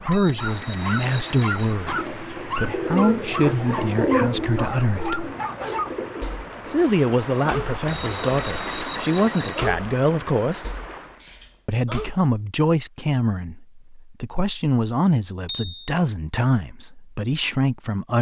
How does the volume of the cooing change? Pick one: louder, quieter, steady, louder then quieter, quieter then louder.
louder then quieter.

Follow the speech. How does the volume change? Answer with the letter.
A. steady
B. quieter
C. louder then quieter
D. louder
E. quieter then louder
A.